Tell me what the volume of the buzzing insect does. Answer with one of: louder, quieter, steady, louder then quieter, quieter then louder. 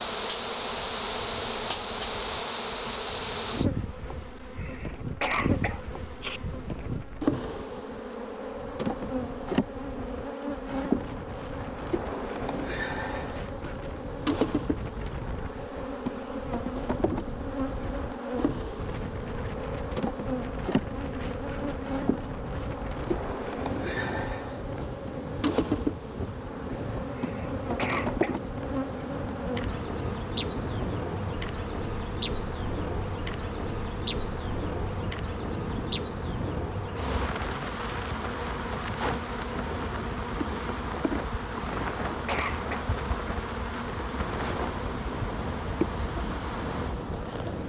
steady.